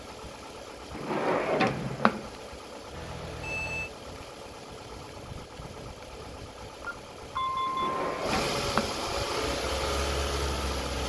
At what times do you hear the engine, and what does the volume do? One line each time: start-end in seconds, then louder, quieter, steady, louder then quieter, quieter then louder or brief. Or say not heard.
0.0-11.0 louder.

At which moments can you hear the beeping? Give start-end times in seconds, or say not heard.
2.9-3.9, 6.8-8.1.